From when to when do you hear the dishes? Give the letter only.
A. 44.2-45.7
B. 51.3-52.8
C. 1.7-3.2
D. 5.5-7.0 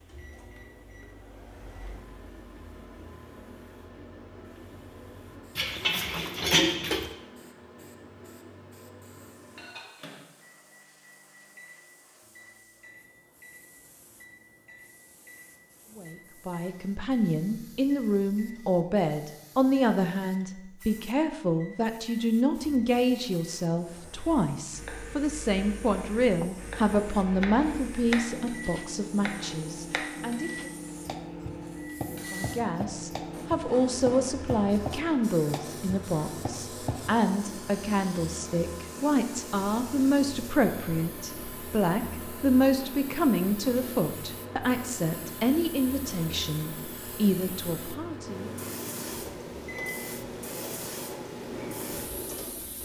D.